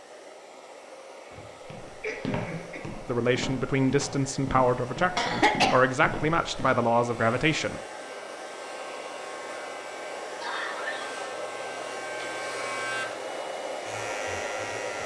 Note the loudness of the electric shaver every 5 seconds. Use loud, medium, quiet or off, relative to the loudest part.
off, medium, loud.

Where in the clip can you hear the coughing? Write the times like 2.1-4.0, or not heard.
2.0-2.9, 5.2-5.8, 10.4-11.1.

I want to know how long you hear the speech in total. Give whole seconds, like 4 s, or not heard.
5 s.